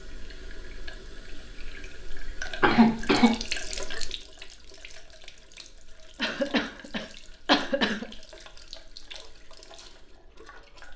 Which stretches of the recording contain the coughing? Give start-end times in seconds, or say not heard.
2.6-3.4, 6.2-8.1.